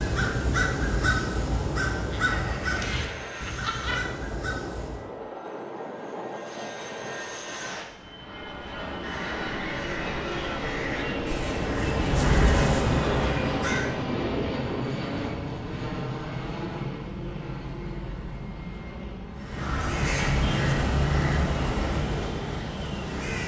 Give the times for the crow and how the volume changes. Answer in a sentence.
You can hear the crow from 0.0 to 5.0 s, getting quieter; from 8.6 to 13.9 s, getting louder; and from 19.3 to 23.4 s, getting quieter.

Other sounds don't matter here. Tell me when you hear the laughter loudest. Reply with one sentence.
The loudest moment of the laughter is at 4 seconds.